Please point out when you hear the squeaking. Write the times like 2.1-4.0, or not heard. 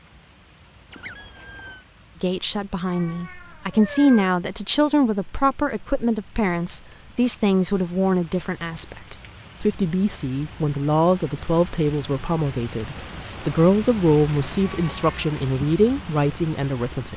0.9-1.8, 7.2-9.5, 12.9-13.7.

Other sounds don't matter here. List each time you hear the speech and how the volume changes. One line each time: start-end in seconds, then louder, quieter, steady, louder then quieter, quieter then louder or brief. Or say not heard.
2.2-17.1 steady.